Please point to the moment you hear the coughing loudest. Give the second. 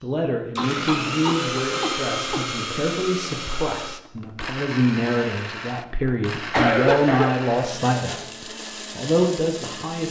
7 s.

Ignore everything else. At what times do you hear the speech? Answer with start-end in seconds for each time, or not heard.
0.0-8.2, 8.9-10.0.